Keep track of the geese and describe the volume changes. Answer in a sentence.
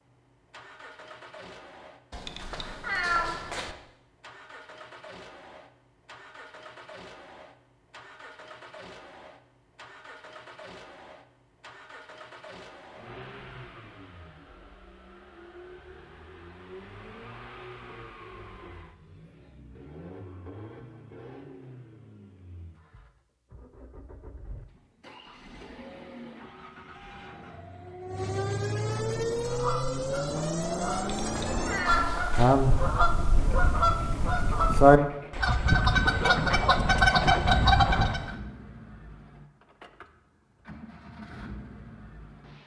The volume of the geese goes up.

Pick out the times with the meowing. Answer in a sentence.
You can hear the meowing from 2.1 to 3.8 s and from 30.9 to 32.5 s.